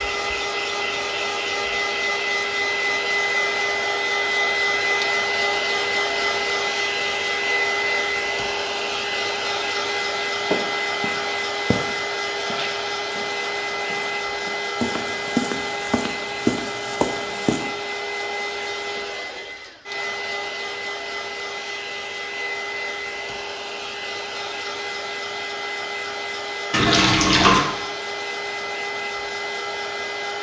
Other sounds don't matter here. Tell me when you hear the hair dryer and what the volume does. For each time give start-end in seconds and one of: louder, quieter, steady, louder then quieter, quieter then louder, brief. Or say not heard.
0.0-30.3 quieter.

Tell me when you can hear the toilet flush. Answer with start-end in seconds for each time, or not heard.
26.7-27.6.